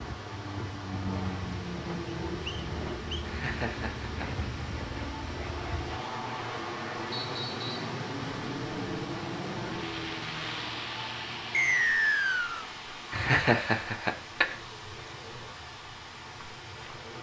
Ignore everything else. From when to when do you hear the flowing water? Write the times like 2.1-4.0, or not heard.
0.0-17.1.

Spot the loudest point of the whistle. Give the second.
12 s.